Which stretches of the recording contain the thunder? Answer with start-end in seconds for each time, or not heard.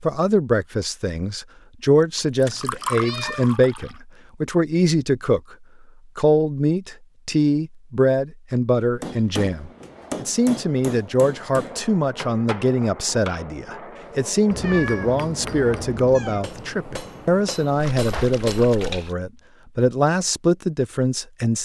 not heard.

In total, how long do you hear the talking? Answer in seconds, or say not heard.
21 s.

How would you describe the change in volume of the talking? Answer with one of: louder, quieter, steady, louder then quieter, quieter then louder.
steady.